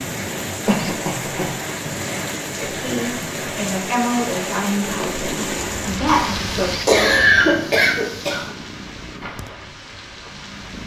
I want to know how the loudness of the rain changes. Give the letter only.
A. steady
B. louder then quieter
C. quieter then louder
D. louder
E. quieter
E.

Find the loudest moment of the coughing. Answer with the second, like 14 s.
7 s.